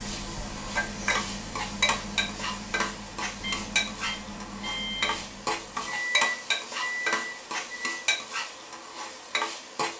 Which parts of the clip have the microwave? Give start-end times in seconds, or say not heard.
0.0-7.9.